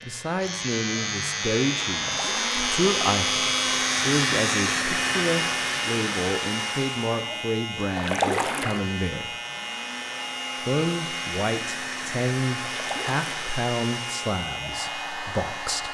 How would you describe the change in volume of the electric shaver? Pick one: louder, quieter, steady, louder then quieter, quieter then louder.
quieter.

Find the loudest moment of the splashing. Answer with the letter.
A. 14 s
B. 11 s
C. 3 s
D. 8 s
D.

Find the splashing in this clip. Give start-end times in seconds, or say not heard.
2.0-2.6, 8.0-8.8, 12.7-13.5.